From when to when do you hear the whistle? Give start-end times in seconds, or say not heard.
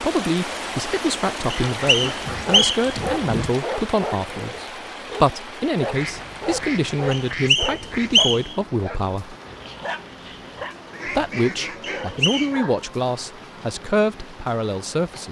1.5-3.0, 7.1-8.6, 11.8-12.4.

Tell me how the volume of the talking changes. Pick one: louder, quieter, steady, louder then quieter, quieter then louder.
steady.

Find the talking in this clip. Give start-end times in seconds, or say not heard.
0.0-9.3, 11.1-15.2.